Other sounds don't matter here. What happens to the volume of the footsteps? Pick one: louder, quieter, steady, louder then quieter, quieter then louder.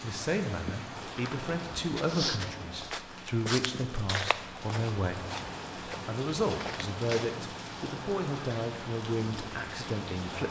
quieter.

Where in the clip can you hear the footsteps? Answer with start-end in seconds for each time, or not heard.
1.1-7.4.